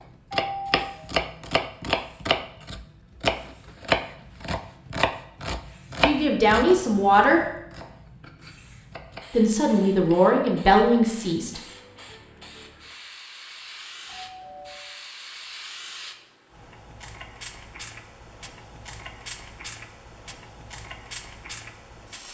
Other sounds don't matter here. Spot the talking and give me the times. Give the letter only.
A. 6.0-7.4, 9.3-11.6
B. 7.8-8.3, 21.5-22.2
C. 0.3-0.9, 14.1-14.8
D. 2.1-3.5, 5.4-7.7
A.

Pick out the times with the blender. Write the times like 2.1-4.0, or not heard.
not heard.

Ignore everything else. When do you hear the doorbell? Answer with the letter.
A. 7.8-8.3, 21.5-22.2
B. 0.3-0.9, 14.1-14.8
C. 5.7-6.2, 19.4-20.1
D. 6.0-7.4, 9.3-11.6
B.